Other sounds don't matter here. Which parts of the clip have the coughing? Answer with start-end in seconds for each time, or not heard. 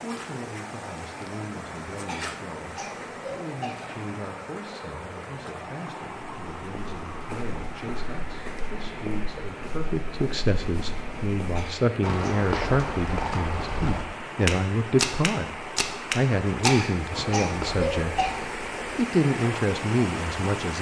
2.0-3.8, 11.6-12.3, 16.6-18.3.